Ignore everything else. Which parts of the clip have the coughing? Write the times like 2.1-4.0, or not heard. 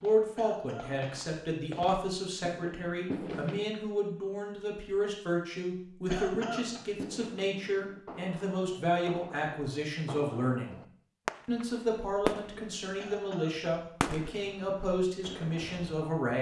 0.3-1.1, 6.0-6.8, 12.9-13.7.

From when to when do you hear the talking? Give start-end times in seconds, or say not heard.
0.0-10.8, 11.4-16.3.